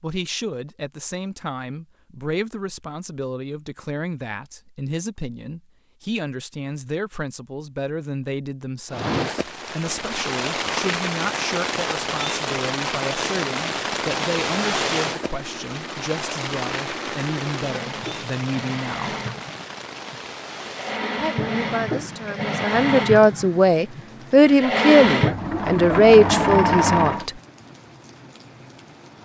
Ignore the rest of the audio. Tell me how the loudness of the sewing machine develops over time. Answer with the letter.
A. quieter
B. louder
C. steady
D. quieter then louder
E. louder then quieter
B.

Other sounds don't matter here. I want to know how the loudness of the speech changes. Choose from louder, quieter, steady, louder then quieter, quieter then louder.
louder.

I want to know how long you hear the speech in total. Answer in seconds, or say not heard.
25 s.